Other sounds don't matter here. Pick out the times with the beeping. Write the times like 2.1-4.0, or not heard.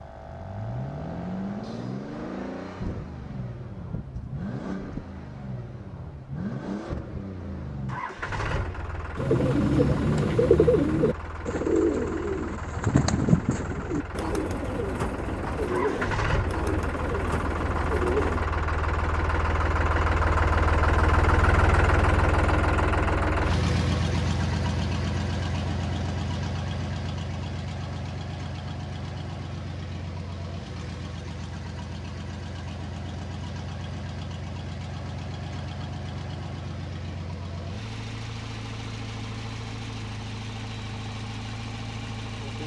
not heard.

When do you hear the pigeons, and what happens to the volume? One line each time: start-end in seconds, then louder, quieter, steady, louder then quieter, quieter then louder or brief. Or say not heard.
9.2-18.5 quieter.